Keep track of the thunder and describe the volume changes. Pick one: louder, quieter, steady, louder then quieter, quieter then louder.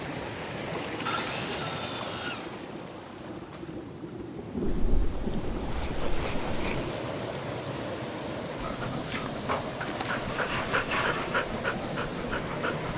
louder then quieter.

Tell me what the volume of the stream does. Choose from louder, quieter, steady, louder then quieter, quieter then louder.
quieter then louder.